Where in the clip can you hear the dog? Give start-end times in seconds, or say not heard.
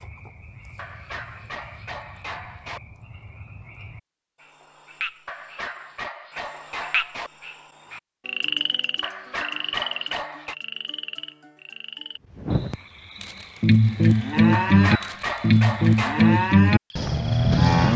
0.8-2.8, 5.2-7.3, 9.0-10.6, 14.5-16.4.